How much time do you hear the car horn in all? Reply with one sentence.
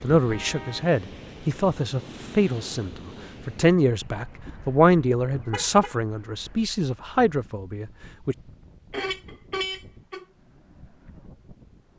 You can hear the car horn for 4 seconds altogether.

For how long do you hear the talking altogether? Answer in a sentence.
The talking can be heard for 8 seconds in total.